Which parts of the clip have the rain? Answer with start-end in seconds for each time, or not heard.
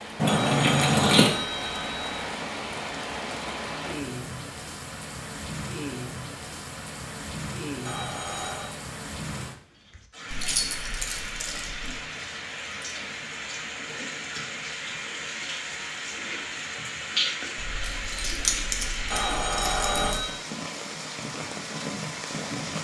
0.0-22.7.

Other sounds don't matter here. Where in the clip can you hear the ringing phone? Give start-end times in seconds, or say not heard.
0.2-2.2, 7.8-8.8, 19.1-20.4.